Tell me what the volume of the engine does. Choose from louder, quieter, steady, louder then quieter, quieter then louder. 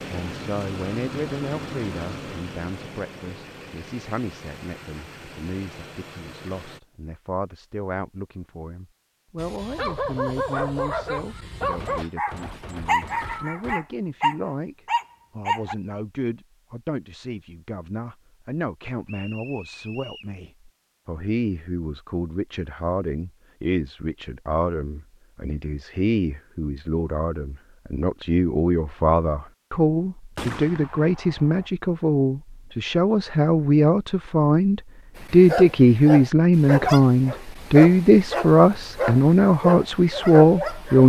quieter.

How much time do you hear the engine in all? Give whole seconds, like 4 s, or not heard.
7 s.